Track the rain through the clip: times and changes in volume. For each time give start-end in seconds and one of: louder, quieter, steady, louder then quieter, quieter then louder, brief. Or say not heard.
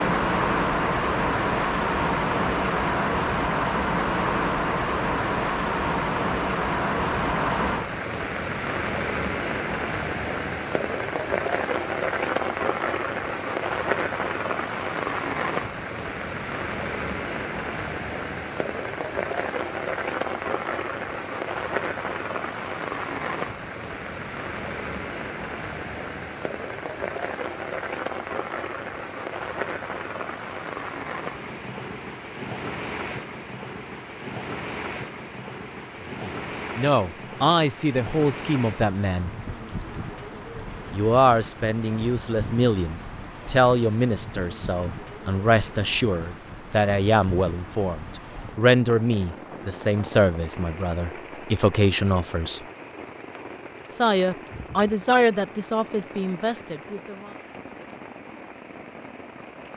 0.0-59.7 quieter.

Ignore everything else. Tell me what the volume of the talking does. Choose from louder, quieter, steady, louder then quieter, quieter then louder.
steady.